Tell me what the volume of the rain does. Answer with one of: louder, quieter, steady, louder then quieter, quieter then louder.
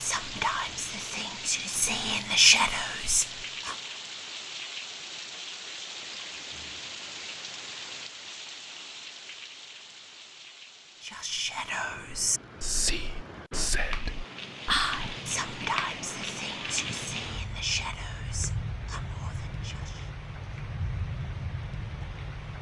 quieter then louder.